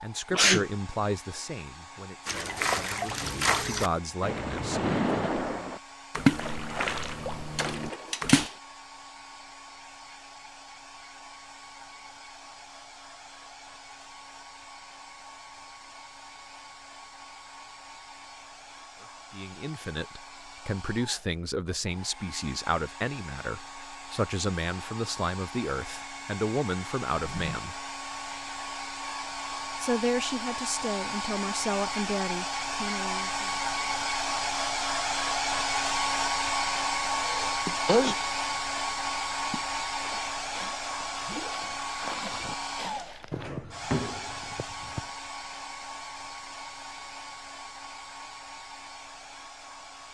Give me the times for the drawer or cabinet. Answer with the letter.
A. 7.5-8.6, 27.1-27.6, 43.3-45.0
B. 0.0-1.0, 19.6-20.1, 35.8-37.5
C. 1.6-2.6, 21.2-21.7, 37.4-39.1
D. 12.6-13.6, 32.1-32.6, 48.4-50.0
A.